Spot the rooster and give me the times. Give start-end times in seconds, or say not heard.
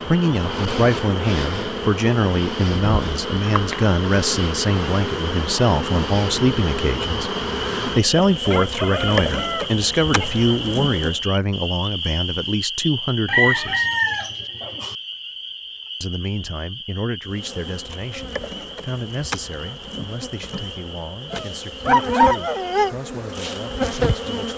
8.4-10.4, 13.2-14.9.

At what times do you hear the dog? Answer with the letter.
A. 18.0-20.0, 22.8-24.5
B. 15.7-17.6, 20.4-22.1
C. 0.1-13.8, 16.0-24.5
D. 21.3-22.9
D.